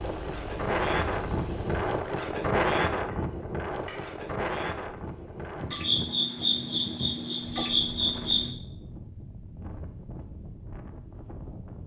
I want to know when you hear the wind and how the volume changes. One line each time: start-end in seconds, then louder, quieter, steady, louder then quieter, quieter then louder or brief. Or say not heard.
0.0-11.8 quieter.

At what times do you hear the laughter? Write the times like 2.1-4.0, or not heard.
not heard.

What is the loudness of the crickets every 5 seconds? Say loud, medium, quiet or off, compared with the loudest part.
loud, loud, off.